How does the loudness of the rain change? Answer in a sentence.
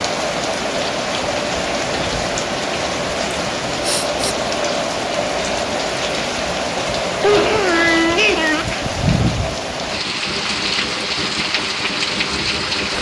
The loudness of the rain stays about the same.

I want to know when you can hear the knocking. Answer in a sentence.
The knocking can't be heard in this clip.